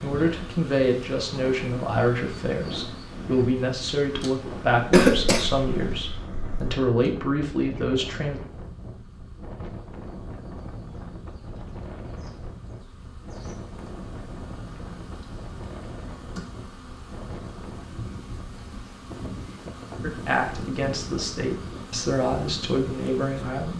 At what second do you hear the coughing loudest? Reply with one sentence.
The volume of the coughing peaks at 5 seconds.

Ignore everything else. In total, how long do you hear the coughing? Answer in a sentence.
You can hear the coughing for 2 seconds altogether.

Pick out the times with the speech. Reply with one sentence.
The speech can be heard from 0.0 to 8.4 s and from 20.0 to 23.7 s.